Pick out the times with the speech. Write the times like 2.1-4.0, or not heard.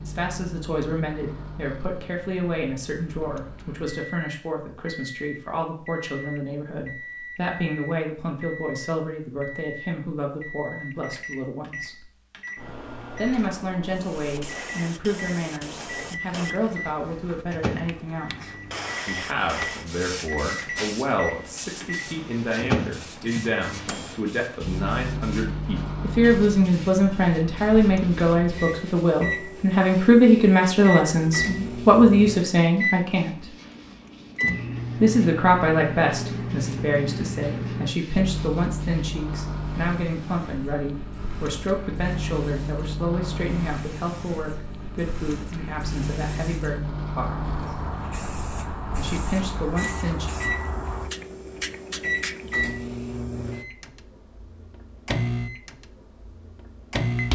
0.0-12.1, 13.2-33.3, 35.0-47.5, 49.0-50.3.